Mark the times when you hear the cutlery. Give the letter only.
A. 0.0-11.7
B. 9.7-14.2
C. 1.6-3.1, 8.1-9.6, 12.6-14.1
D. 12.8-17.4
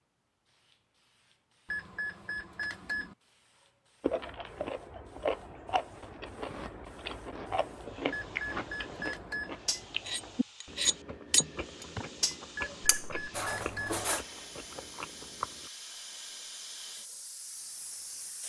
B.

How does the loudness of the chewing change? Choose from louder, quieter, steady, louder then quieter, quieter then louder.
quieter.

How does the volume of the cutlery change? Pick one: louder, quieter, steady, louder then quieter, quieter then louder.
louder then quieter.